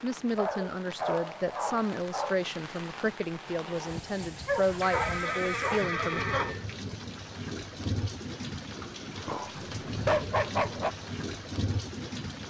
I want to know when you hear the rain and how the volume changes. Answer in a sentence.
The rain can be heard from 0.0 to 12.4 s, getting louder.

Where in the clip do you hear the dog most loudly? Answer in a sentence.
The volume of the dog peaks at 10 seconds.